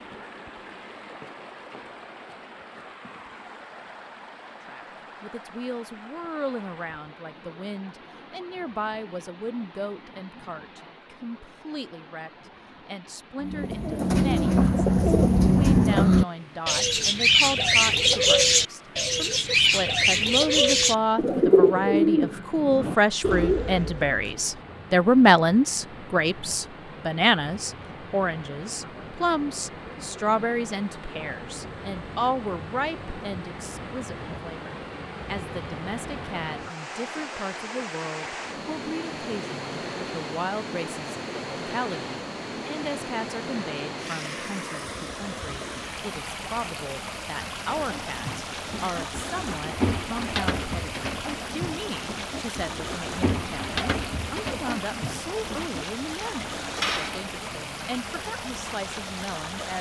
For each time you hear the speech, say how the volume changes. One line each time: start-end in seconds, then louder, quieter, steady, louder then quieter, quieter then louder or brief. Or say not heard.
4.7-59.7 louder then quieter.